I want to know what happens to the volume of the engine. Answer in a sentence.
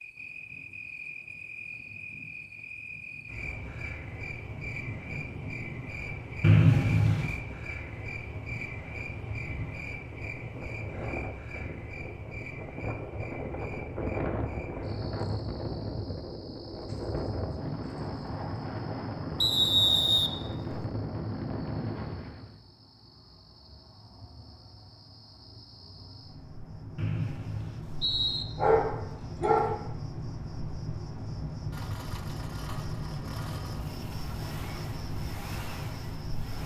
The loudness of the engine stays about the same.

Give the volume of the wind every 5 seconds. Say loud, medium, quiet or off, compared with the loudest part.
quiet, medium, loud, loud, loud, off, off, off.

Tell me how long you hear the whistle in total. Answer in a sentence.
The whistle can be heard for 4 seconds in total.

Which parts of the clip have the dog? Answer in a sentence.
You can hear the dog from 28.6 to 29.8 s.